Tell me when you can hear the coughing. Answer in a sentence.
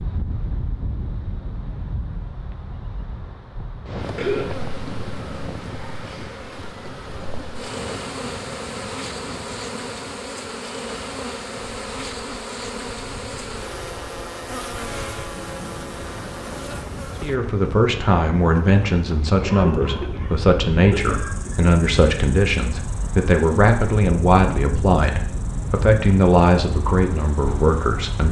The coughing can be heard from 4.2 to 4.6 s and from 19.4 to 21.8 s.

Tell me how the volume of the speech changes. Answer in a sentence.
The volume of the speech stays about the same.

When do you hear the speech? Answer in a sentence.
The speech can be heard from 17.2 to 28.2 s.